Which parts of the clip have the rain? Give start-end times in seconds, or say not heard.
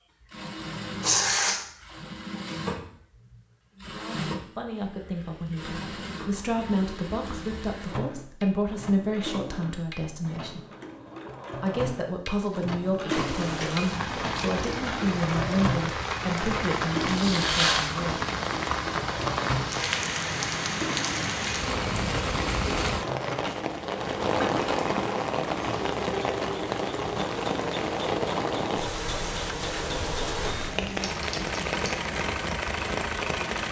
13.1-33.6.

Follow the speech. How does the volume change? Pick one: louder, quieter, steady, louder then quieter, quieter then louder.
steady.